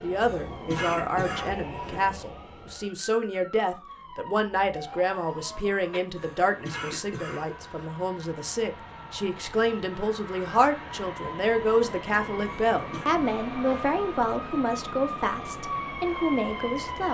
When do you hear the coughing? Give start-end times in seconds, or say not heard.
0.2-2.0, 6.2-7.8, 12.4-13.1.